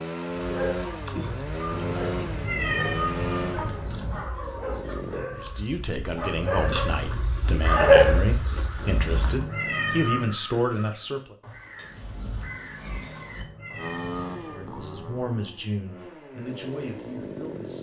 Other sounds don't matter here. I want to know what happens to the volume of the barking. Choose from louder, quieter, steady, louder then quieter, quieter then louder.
louder.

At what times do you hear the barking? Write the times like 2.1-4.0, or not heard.
0.3-9.4.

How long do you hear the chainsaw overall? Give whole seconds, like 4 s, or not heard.
9 s.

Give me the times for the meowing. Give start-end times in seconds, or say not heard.
1.7-4.2, 8.8-10.3, 12.8-15.3.